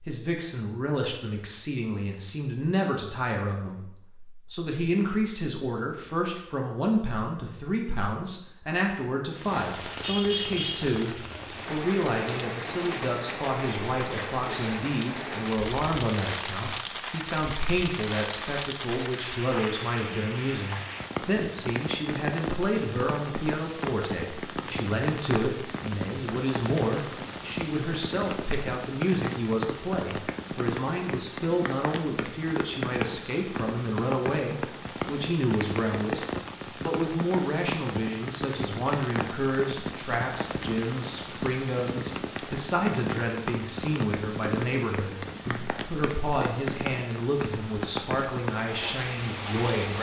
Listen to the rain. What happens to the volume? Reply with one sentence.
The loudness of the rain stays about the same.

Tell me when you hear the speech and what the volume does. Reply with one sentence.
You can hear the speech from 0.0 to 49.9 s, at a steady volume.